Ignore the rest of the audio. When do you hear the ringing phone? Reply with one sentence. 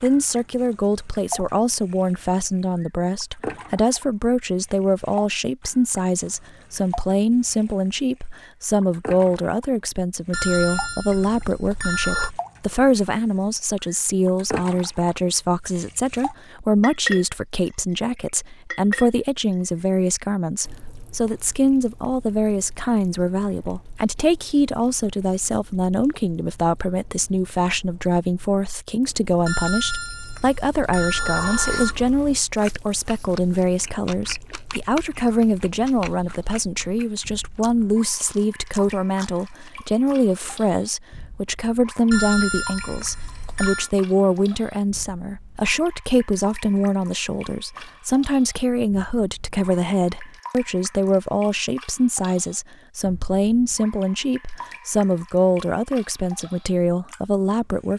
The ringing phone can be heard from 10.3 to 12.3 s, from 29.4 to 32.1 s and from 42.1 to 43.9 s.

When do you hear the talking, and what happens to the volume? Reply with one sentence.
You can hear the talking from 0.0 to 57.9 s, at a steady volume.